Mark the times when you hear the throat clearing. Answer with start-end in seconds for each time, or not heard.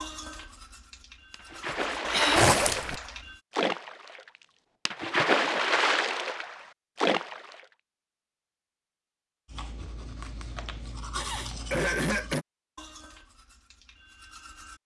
2.1-2.6, 11.1-12.4.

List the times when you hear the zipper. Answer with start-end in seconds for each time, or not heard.
2.3-3.0.